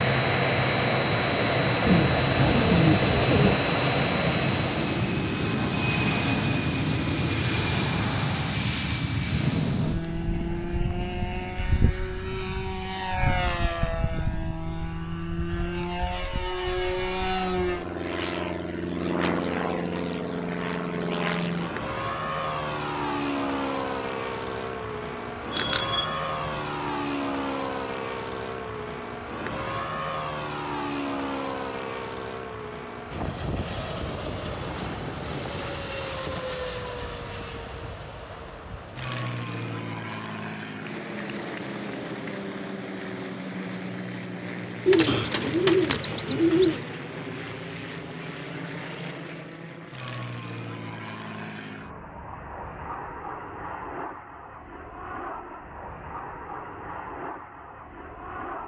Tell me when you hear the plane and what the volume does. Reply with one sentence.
You can hear the plane from 0.0 to 58.6 s, getting quieter.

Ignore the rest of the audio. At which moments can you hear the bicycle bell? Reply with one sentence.
The bicycle bell can be heard from 25.5 to 26.9 s.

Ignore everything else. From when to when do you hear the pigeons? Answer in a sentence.
You can hear the pigeons from 1.9 to 3.6 s and from 44.9 to 46.9 s.